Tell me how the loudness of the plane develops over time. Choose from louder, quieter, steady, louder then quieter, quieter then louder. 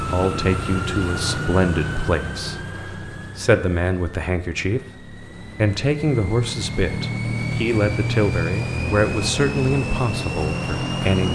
quieter then louder.